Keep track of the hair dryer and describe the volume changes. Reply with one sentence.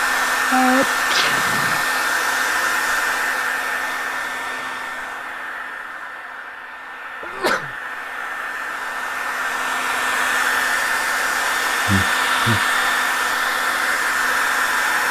The loudness of the hair dryer goes down, then up.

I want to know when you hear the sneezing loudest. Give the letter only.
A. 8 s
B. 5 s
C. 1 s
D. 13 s
C.